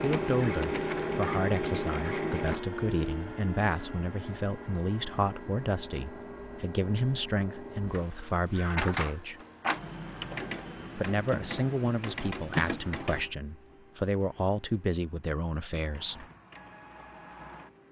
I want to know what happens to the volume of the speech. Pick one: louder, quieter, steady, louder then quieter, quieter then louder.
steady.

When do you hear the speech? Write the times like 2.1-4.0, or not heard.
0.0-9.4, 10.9-16.2.